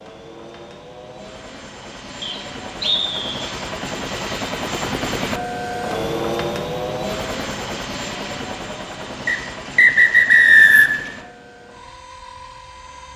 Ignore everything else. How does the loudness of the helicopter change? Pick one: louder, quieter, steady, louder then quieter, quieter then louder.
louder then quieter.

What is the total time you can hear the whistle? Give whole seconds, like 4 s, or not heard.
3 s.